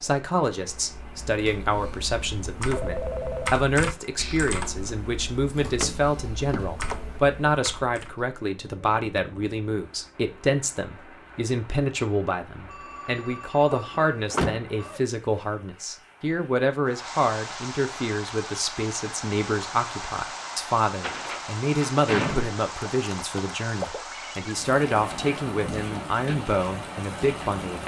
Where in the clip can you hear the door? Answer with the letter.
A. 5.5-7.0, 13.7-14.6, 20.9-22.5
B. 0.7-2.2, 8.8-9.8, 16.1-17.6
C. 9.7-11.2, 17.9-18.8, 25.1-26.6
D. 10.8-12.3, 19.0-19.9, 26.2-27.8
A.